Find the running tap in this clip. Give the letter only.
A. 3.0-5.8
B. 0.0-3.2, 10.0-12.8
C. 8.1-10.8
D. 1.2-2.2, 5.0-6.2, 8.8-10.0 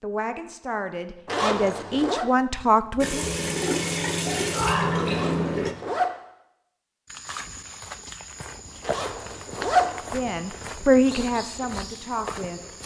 A.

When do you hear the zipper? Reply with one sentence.
You can hear the zipper from 1.2 to 2.2 s, from 5.0 to 6.2 s and from 8.8 to 10.0 s.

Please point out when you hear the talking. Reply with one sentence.
You can hear the talking from 0.0 to 3.2 s and from 10.0 to 12.8 s.